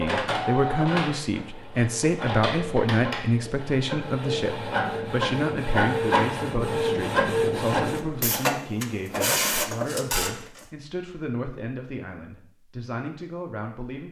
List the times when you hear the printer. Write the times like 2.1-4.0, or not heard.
0.0-10.7.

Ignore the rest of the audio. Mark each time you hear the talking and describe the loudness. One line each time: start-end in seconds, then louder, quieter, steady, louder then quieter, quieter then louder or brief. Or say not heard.
0.0-14.0 quieter.